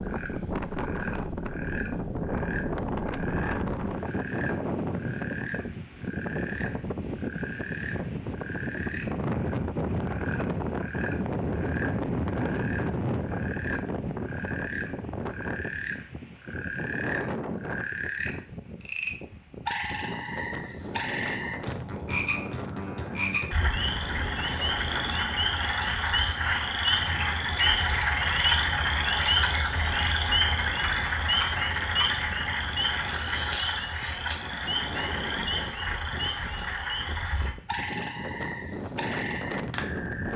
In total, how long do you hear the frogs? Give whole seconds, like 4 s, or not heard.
40 s.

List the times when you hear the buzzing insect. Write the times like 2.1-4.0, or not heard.
not heard.